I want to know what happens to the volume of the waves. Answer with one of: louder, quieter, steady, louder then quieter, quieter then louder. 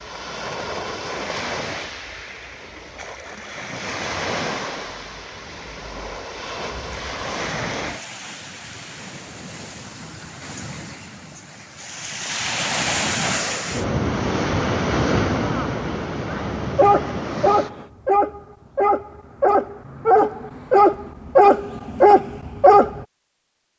louder.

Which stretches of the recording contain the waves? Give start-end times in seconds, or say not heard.
0.0-17.9.